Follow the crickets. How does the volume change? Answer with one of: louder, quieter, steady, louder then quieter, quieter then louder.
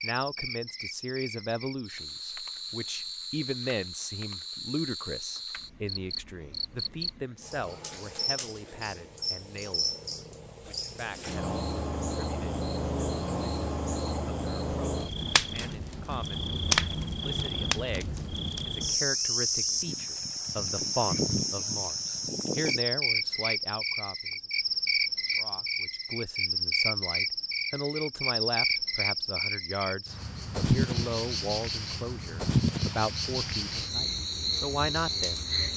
louder.